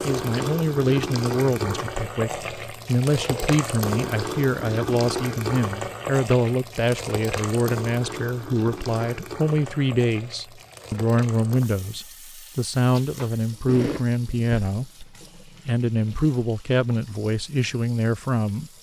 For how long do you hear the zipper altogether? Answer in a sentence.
The zipper can be heard for 2 seconds in total.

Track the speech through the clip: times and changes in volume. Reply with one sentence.
The speech can be heard from 0.0 to 18.7 s, at a steady volume.